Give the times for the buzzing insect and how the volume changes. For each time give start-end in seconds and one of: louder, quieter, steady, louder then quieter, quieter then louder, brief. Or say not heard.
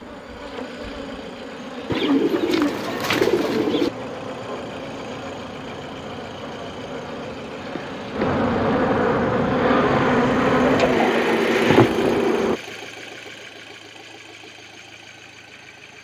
0.0-12.6 louder.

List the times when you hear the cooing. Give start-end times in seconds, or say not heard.
1.9-3.9, 10.1-11.9.